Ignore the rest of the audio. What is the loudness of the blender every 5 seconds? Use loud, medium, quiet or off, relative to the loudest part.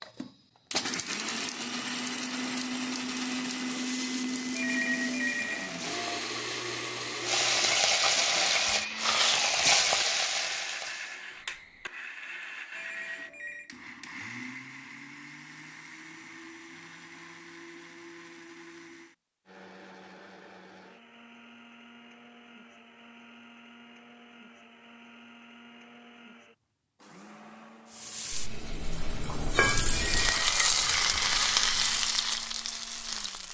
loud, loud, medium, quiet, quiet, quiet, quiet.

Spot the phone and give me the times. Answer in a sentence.
The phone can be heard from 4.5 to 6.0 s, from 12.8 to 13.7 s and from 29.9 to 30.7 s.